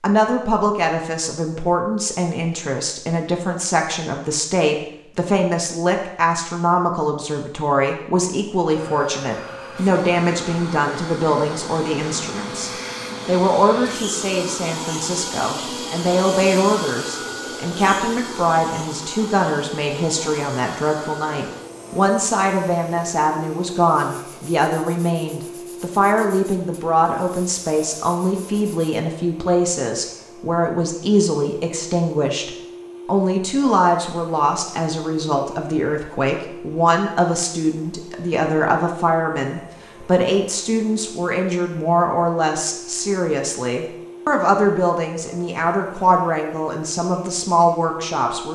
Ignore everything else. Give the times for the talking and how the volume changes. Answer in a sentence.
The talking can be heard from 0.0 to 48.5 s, at a steady volume.